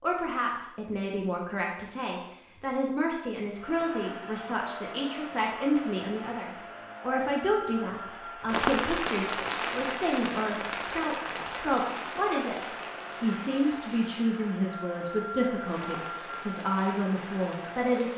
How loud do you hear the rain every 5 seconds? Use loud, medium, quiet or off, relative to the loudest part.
off, loud, medium, quiet.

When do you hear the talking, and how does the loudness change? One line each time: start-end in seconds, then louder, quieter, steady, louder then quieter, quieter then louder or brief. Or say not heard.
0.0-12.6 steady
13.2-18.1 steady.